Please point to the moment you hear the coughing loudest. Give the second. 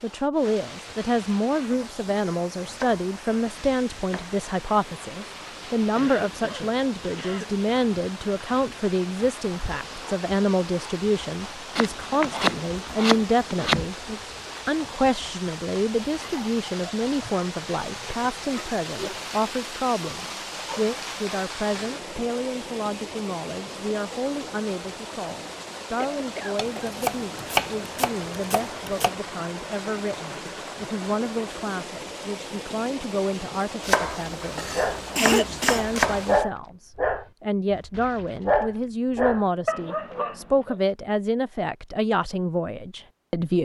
35 s.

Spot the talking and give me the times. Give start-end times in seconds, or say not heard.
0.0-43.6.